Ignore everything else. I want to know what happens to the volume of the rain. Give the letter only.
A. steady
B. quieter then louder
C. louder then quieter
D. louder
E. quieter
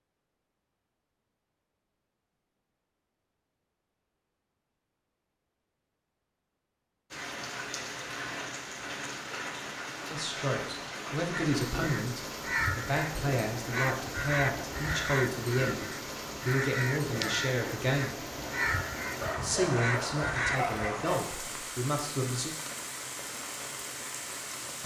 A.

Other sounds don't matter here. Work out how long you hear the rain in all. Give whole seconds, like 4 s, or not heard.
18 s.